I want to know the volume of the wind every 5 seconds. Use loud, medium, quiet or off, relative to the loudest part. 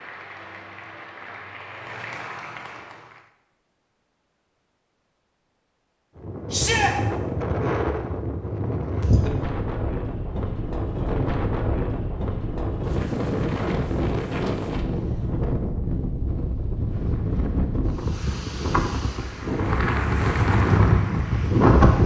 off, medium, medium, medium, loud.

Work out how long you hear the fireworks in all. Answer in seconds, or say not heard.
not heard.